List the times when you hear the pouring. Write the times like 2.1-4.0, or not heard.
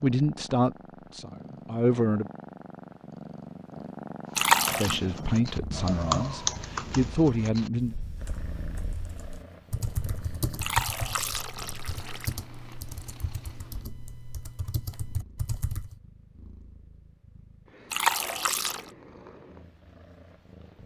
4.3-5.0, 10.6-12.3, 17.9-18.8.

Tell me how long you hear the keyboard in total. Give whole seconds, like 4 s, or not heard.
12 s.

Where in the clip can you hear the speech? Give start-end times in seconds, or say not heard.
0.0-2.2, 4.7-8.0.